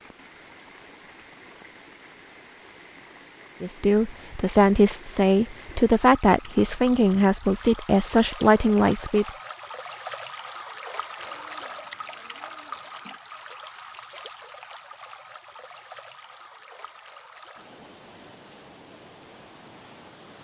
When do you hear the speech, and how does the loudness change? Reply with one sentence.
You can hear the speech from 3.6 to 9.3 s, at a steady volume.